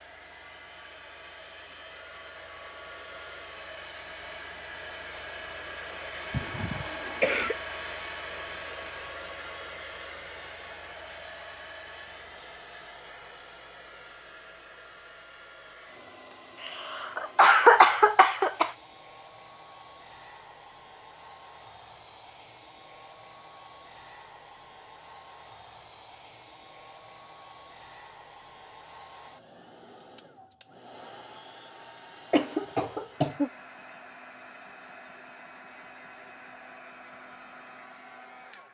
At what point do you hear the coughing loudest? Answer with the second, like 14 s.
18 s.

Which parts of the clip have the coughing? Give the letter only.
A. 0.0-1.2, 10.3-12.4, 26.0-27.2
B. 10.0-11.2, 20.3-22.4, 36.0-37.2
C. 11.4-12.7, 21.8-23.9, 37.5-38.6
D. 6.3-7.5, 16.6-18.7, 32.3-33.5
D.